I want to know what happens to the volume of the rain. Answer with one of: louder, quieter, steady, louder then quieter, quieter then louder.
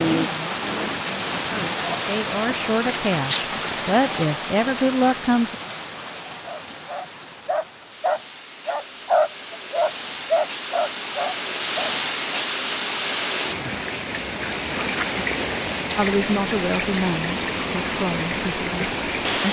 quieter then louder.